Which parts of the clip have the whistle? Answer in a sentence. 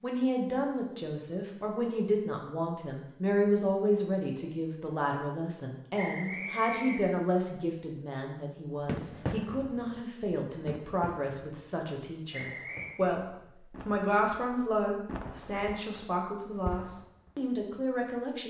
The whistle can be heard from 6.0 to 7.0 s and from 12.3 to 13.1 s.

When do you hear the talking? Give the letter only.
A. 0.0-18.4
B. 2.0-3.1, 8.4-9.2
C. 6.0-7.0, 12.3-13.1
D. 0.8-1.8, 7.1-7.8
A.